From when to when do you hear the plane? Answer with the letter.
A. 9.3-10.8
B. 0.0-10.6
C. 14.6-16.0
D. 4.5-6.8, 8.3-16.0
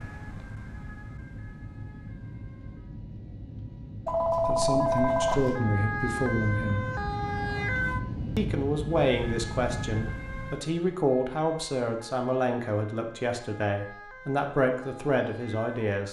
B.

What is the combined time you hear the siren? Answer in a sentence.
You can hear the siren for 14 seconds altogether.